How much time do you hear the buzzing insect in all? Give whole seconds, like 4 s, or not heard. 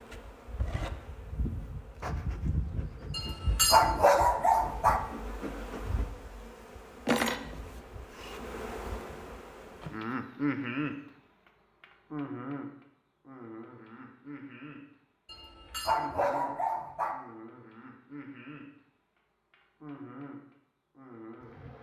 22 s.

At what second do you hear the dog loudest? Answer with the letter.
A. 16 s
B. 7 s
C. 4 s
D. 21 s
C.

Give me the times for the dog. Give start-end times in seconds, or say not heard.
3.1-5.0, 15.2-17.1.